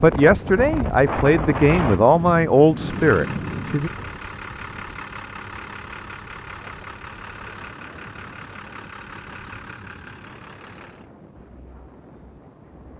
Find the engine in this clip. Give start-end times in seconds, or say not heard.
2.7-11.1.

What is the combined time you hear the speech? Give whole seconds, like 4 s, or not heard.
4 s.